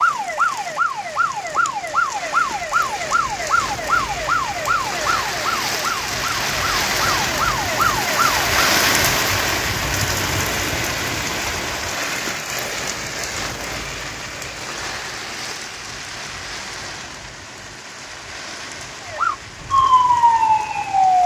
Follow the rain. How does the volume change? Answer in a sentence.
The volume of the rain goes up, then down.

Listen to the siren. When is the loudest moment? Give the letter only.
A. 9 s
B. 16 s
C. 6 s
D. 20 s
D.